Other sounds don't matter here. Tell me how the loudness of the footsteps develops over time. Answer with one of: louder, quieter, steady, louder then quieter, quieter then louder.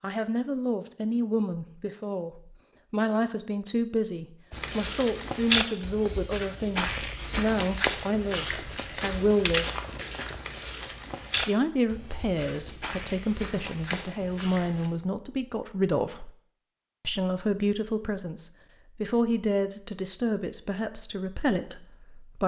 quieter.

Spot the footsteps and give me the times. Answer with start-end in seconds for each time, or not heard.
4.5-14.9.